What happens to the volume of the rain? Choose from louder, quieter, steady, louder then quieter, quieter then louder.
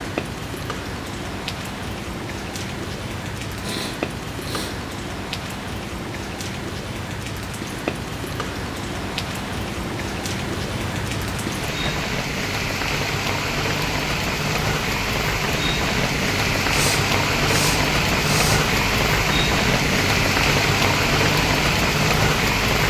louder.